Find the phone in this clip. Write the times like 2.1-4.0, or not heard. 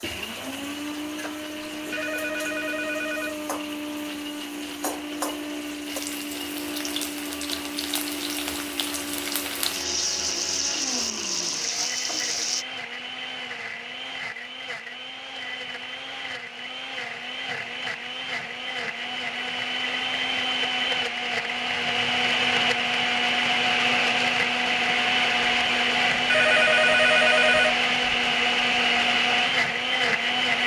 1.7-3.4, 26.1-27.8.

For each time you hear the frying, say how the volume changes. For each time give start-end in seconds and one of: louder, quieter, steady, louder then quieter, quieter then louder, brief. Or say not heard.
0.0-12.7 louder.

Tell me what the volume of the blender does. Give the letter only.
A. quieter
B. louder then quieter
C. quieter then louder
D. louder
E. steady
D.